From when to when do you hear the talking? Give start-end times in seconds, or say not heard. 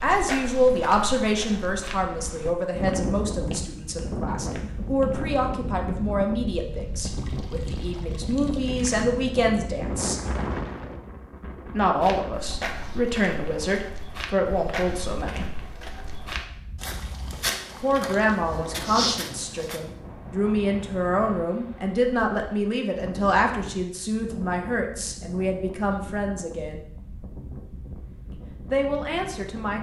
0.0-10.2, 11.7-15.4, 17.8-26.8, 28.3-29.7.